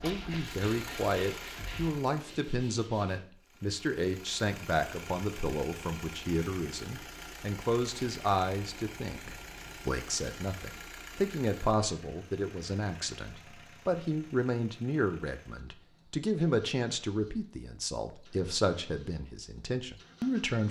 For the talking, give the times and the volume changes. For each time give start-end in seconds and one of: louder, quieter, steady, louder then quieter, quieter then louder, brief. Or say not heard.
0.0-20.6 steady.